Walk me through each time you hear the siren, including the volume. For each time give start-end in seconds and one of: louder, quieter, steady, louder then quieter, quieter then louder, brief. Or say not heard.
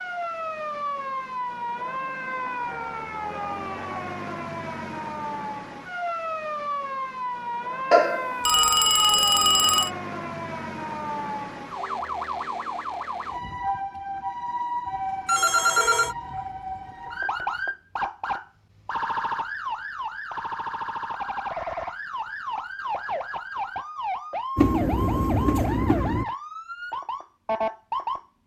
0.0-28.4 steady.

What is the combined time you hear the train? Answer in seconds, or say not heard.
2 s.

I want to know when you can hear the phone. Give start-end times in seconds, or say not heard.
7.9-9.9, 15.2-16.1.